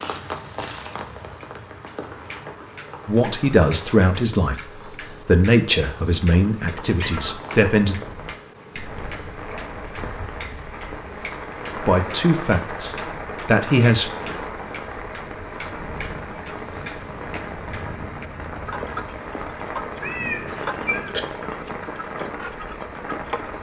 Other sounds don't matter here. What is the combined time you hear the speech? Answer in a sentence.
You can hear the speech for 7 seconds altogether.